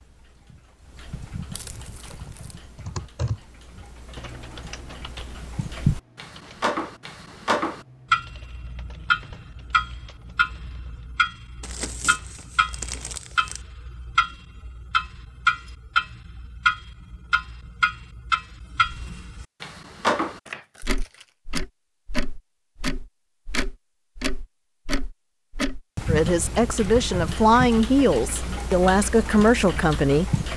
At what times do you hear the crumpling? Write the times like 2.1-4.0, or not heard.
1.5-2.5, 11.6-13.6, 20.4-21.3.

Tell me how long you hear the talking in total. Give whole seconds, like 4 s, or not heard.
4 s.